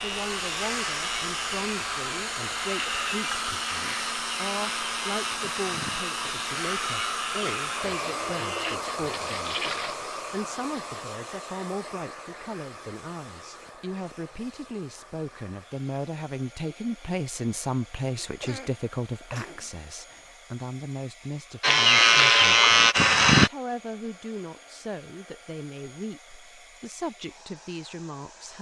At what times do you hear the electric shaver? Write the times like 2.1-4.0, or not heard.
0.0-8.8, 21.6-23.5.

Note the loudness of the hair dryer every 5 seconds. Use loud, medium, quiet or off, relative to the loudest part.
loud, loud, medium, quiet, quiet, quiet.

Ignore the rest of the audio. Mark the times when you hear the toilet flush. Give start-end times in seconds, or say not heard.
9.1-9.9.